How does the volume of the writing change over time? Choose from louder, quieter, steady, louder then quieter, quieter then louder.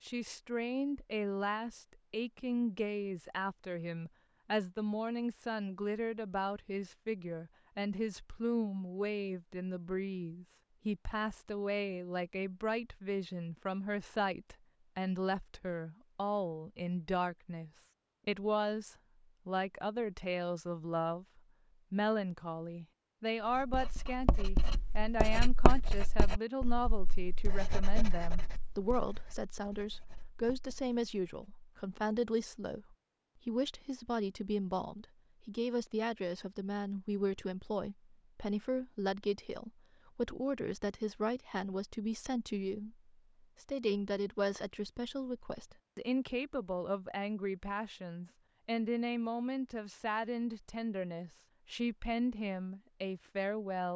quieter.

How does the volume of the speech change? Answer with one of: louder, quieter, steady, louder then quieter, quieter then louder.
steady.